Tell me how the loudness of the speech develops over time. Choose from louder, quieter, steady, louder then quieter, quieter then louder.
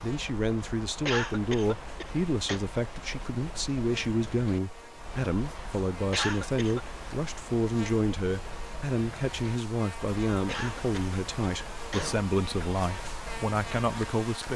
steady.